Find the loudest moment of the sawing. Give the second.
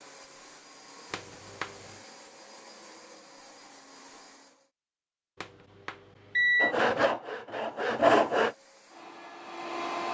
8 s.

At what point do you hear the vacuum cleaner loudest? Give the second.
10 s.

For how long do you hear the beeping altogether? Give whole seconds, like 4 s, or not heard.
2 s.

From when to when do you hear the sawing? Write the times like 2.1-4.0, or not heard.
6.6-8.6.